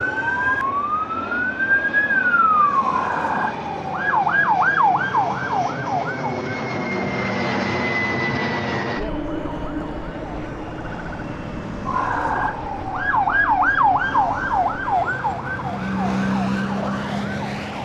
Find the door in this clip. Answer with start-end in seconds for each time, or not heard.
not heard.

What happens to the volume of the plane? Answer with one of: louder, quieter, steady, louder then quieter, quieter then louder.
louder then quieter.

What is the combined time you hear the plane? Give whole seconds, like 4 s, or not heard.
18 s.